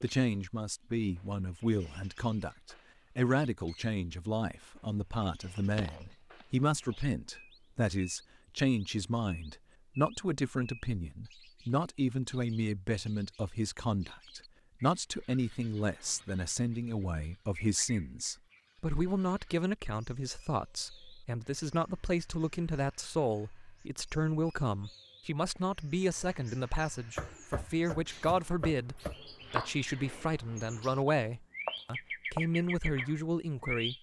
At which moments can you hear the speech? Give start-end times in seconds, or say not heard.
0.0-33.9.